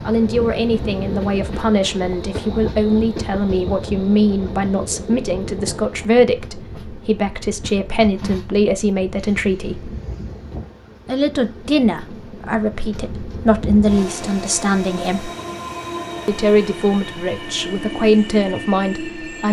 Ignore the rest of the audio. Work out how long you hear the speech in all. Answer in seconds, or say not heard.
17 s.